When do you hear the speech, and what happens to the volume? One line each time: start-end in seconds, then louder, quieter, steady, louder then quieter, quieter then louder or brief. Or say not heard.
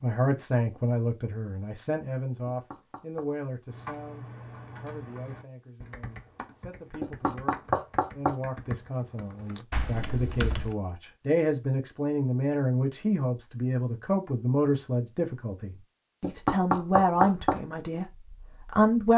0.0-19.1 quieter then louder.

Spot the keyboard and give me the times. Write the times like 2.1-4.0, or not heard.
3.6-10.8.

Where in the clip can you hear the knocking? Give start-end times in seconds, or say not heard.
2.5-3.3, 7.0-8.3, 16.2-17.6.